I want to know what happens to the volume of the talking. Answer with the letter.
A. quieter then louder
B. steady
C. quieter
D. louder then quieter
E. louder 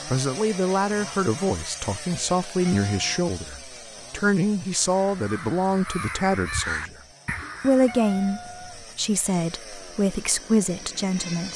B.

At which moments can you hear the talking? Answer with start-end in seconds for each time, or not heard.
0.1-7.0, 7.6-11.5.